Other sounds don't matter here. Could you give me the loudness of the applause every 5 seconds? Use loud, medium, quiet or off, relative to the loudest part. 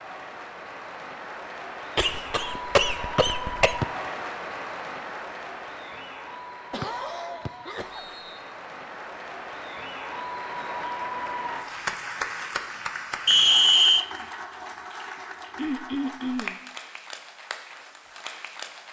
loud, medium, loud, medium.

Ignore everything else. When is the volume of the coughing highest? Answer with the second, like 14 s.
3 s.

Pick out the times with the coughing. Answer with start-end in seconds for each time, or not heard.
1.9-3.8, 6.7-8.2, 15.6-16.6.